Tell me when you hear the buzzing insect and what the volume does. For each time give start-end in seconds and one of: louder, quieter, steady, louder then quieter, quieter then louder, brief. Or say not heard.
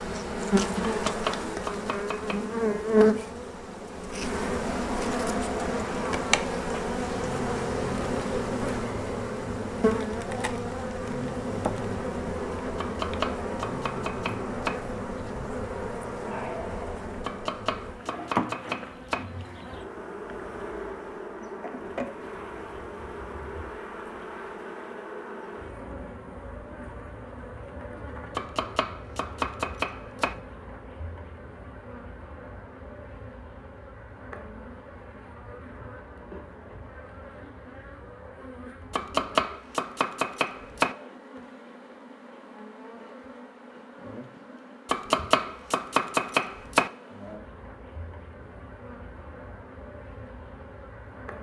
0.0-51.3 quieter.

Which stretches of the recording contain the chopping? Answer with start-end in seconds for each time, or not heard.
1.1-2.4, 12.8-14.8, 17.2-19.2, 28.4-30.4, 38.9-41.0, 44.9-46.9.